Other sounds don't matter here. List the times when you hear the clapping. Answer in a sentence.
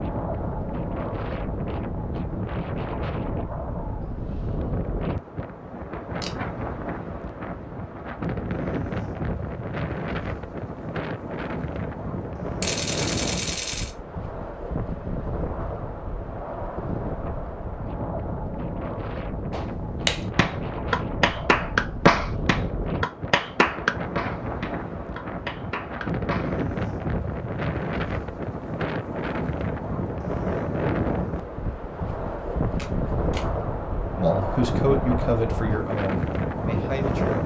You can hear the clapping from 19.5 to 26.5 s.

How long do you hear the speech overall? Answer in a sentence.
The speech can be heard for 3 seconds in total.